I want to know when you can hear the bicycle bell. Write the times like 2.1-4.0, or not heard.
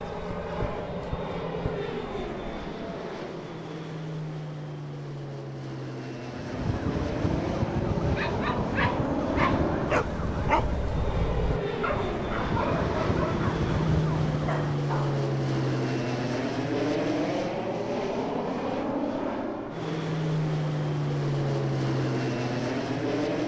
not heard.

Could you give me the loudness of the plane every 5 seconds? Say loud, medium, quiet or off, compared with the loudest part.
medium, medium, loud, loud, loud.